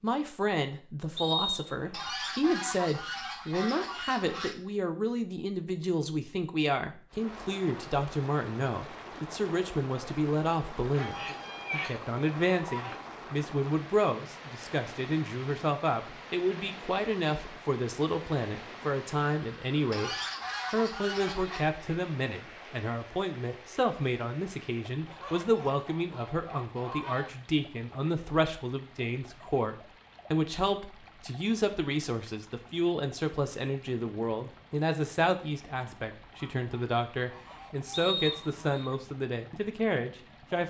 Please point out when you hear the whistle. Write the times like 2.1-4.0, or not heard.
1.1-2.1, 37.9-38.9.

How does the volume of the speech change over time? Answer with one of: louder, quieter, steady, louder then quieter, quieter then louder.
steady.